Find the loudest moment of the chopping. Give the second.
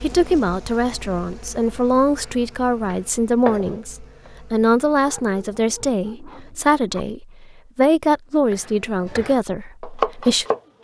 10 s.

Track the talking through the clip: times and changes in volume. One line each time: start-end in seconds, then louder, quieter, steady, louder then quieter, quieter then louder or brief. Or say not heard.
0.0-10.4 steady.